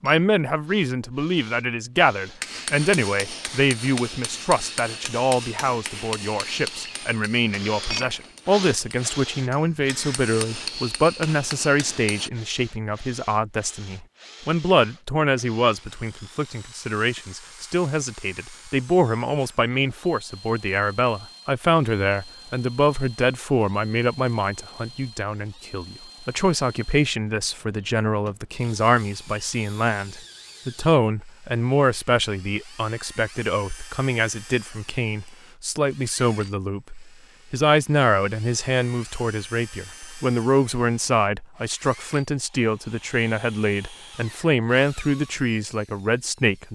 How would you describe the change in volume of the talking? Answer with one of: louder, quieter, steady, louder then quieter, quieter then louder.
steady.